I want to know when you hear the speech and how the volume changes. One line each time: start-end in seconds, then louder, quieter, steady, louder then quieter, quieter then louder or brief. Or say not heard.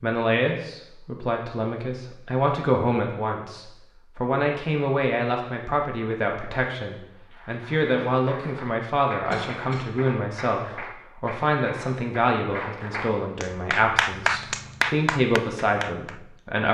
0.0-16.6 steady.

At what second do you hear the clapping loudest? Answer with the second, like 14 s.
14 s.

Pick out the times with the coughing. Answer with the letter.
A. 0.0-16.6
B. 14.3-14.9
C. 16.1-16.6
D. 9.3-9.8
D.